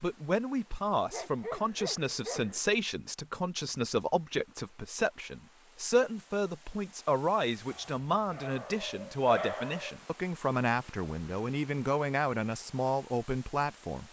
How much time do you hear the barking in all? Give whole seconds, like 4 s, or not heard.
4 s.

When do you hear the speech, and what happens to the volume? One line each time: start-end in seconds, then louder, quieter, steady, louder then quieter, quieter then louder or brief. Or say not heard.
0.0-14.0 steady.